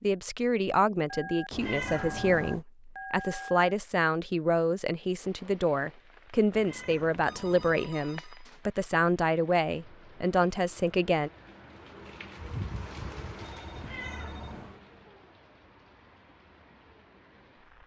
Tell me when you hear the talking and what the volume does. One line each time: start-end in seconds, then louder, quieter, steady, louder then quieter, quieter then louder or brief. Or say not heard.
0.0-11.3 steady.